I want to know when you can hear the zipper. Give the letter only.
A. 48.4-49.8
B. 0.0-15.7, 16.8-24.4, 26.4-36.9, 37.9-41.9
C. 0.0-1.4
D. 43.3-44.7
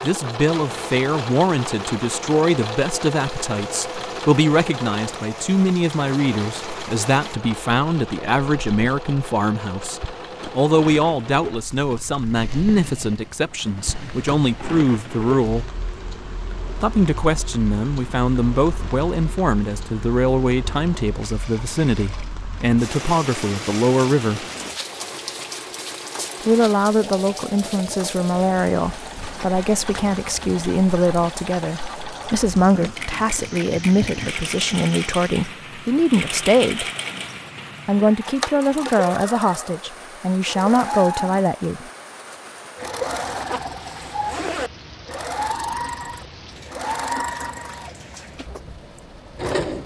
D.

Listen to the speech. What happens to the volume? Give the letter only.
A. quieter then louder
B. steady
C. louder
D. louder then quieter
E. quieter
B.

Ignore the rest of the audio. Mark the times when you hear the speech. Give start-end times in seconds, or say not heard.
0.0-15.7, 16.8-24.4, 26.4-36.9, 37.9-41.9.